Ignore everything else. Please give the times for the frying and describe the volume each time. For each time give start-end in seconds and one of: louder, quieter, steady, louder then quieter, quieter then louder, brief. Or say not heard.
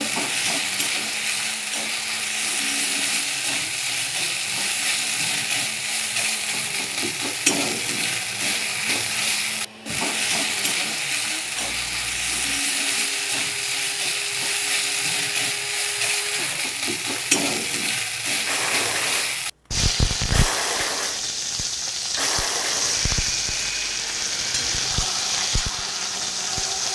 0.0-26.9 steady.